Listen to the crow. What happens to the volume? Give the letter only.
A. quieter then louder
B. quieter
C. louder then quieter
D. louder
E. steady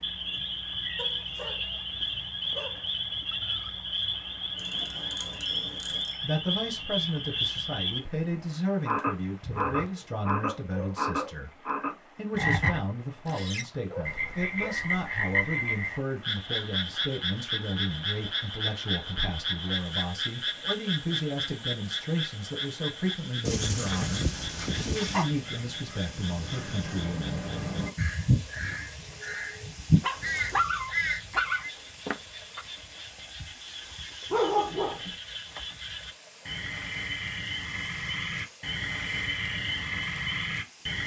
D.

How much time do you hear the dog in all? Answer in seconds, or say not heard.
11 s.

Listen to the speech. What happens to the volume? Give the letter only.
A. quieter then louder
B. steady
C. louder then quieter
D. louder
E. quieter
B.